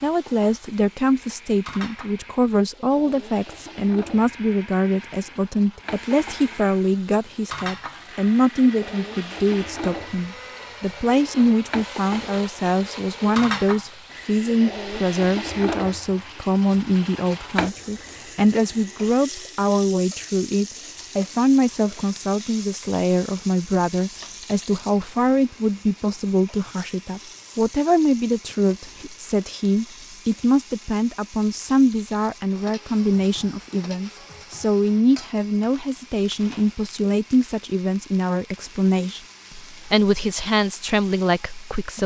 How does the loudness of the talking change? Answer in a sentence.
The volume of the talking stays about the same.